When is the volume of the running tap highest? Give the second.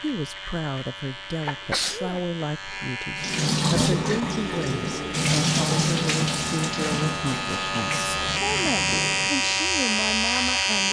6 s.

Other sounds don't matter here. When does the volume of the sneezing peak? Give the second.
2 s.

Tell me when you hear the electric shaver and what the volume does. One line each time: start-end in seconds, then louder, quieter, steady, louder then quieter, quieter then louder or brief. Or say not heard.
0.0-10.8 louder.